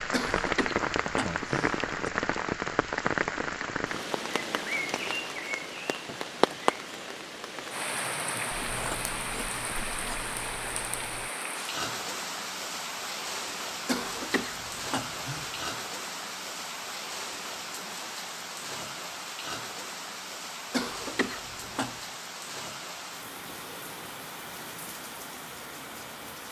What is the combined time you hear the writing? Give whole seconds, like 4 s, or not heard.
3 s.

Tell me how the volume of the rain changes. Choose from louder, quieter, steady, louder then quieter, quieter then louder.
quieter.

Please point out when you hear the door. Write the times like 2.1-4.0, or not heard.
not heard.